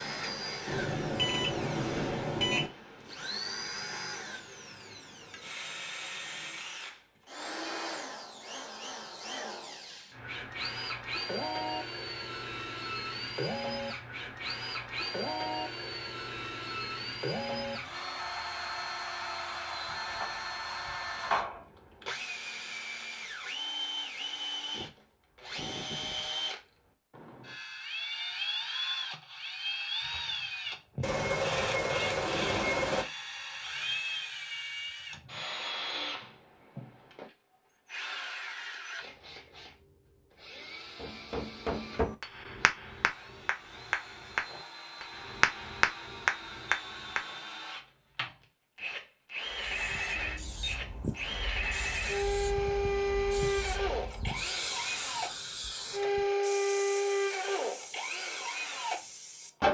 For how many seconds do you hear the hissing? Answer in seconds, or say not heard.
10 s.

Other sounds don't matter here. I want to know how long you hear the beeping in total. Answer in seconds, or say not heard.
5 s.